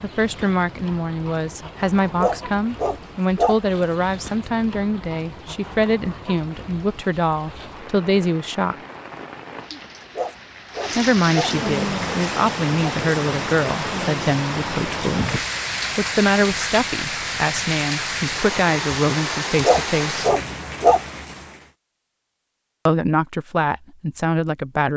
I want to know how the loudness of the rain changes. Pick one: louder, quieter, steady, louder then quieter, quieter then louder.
louder.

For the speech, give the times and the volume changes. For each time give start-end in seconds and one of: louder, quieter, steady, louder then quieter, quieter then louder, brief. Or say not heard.
0.0-8.8 steady
10.9-20.2 steady
22.9-24.9 brief.